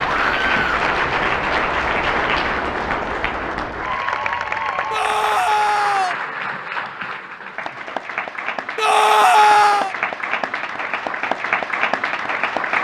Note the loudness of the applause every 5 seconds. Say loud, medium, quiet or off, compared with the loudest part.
loud, medium, loud.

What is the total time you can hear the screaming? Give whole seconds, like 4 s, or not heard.
3 s.